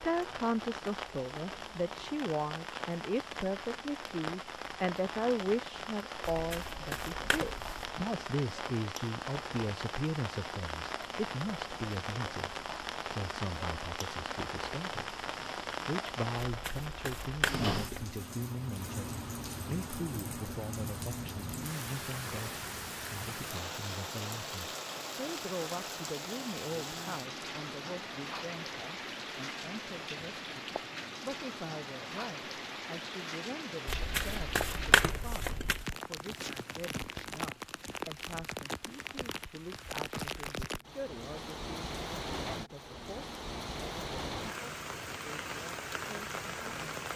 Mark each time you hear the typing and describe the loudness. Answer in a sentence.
The typing can't be heard in this clip.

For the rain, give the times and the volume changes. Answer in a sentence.
You can hear the rain from 0.0 to 47.1 s, at a steady volume.